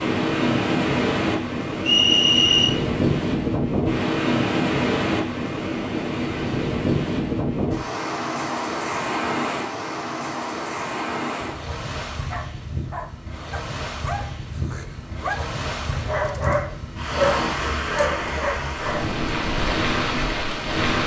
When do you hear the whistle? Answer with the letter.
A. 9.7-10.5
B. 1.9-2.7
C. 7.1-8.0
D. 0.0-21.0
B.